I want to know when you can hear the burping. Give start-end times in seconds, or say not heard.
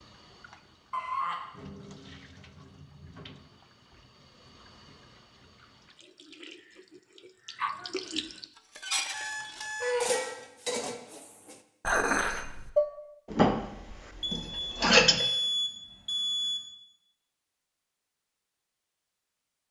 not heard.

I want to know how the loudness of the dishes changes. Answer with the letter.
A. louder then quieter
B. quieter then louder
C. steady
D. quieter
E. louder
A.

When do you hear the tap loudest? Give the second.
8 s.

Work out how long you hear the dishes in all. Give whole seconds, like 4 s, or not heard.
7 s.